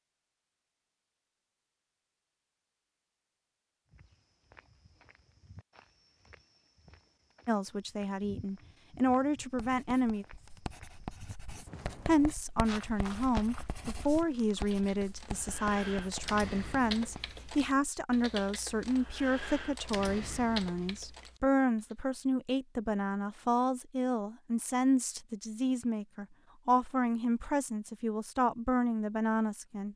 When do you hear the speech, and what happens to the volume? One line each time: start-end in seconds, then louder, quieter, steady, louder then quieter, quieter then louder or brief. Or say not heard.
7.5-10.2 brief
12.1-29.9 steady.